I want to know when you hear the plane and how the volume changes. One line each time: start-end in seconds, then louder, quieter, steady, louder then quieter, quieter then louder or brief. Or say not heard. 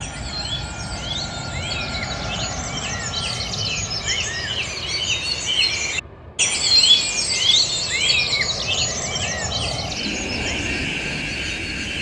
0.0-11.9 quieter then louder.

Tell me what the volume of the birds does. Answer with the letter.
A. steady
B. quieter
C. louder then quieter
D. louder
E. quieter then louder
C.